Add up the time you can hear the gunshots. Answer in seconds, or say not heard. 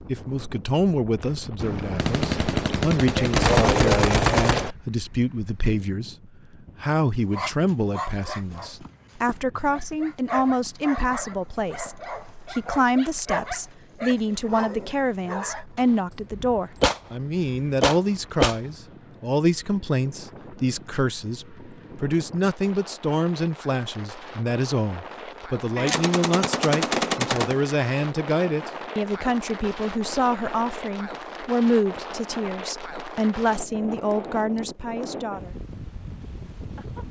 8 s.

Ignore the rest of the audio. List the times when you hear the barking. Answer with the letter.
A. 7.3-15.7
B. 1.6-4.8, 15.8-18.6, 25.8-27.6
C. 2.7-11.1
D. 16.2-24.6
A.